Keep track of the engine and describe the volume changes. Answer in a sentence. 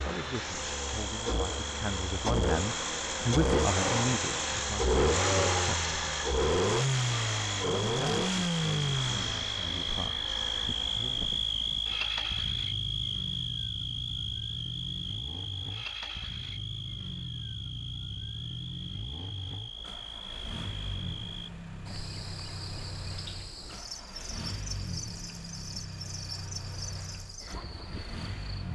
The loudness of the engine goes down.